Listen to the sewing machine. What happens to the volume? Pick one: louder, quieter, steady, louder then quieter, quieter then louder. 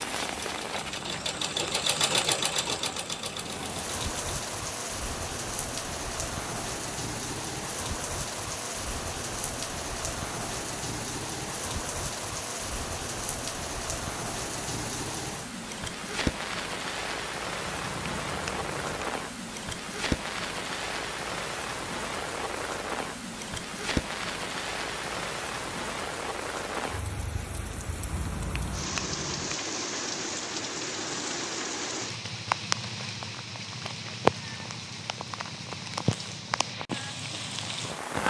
louder then quieter.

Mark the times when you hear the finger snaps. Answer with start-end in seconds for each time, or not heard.
0.8-2.8, 17.6-19.1, 28.1-29.6.